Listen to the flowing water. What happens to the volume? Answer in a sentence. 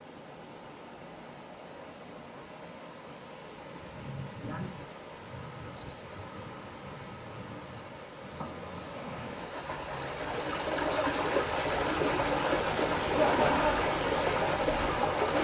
The loudness of the flowing water goes up.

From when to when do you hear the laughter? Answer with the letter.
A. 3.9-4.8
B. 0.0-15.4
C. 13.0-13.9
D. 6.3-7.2
C.